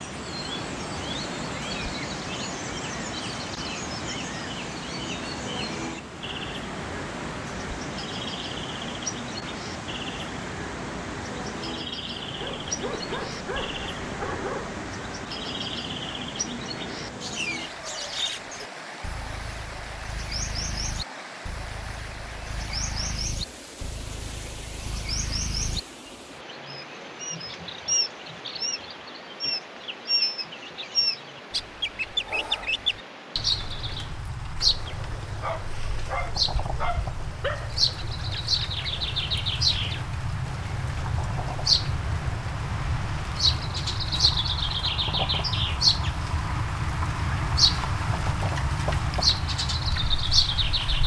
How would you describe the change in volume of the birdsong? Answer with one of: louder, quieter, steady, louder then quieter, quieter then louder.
louder.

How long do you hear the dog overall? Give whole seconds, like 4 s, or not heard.
5 s.